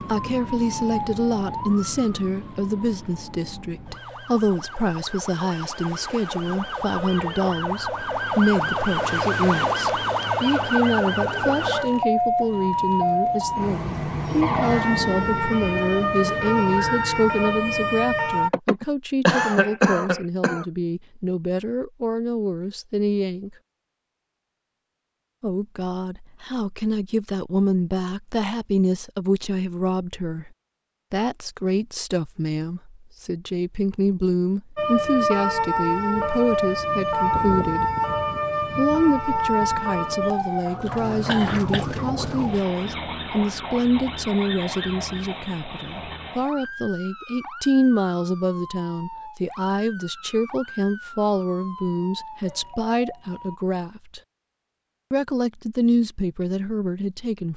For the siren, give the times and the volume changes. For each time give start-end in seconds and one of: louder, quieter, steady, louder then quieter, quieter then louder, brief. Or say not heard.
0.0-18.5 louder
34.8-53.6 quieter.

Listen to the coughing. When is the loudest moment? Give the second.
19 s.